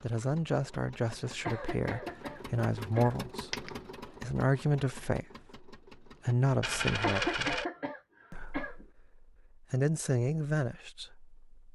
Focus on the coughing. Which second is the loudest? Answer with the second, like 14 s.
7 s.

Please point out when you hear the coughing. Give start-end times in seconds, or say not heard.
1.4-3.2, 7.0-8.8.